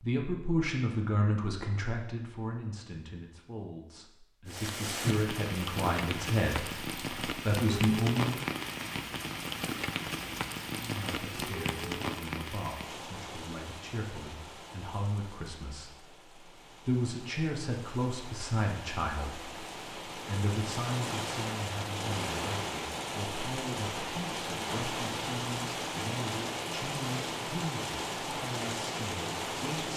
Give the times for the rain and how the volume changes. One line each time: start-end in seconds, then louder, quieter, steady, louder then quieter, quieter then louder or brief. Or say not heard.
4.5-29.9 quieter then louder.